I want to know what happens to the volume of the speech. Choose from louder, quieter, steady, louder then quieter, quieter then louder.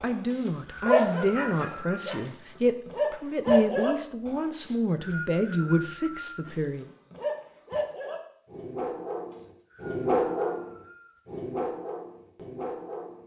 steady.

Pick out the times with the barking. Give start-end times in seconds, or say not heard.
0.0-4.3, 6.5-13.2.